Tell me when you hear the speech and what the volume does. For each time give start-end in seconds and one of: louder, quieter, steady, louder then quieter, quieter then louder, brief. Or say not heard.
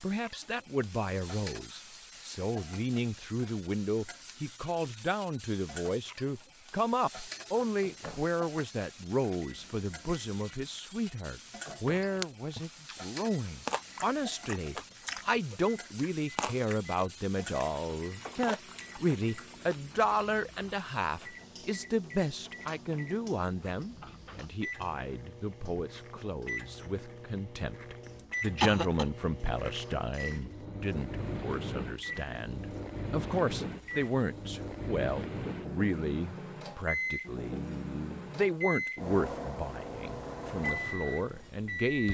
0.0-42.1 steady.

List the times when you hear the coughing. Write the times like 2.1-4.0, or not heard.
28.6-29.1.